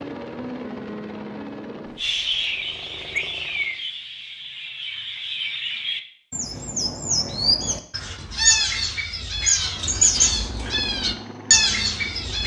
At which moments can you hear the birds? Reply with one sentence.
You can hear the birds from 1.9 to 12.4 s.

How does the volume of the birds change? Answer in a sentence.
The loudness of the birds goes up.